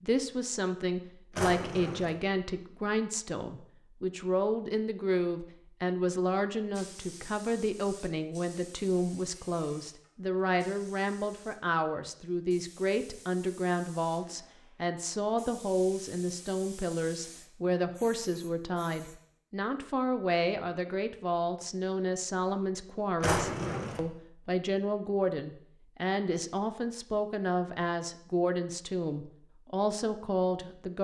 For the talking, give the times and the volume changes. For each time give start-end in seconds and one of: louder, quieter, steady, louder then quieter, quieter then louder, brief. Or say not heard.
0.0-30.9 steady.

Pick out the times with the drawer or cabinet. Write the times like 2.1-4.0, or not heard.
1.3-2.1, 23.2-24.0.